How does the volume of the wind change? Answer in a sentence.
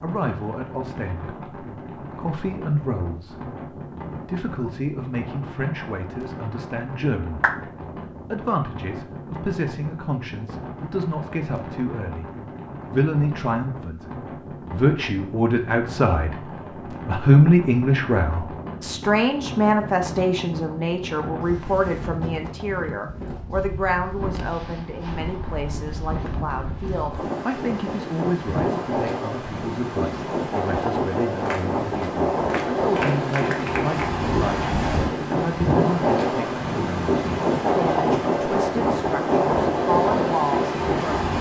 The volume of the wind goes up.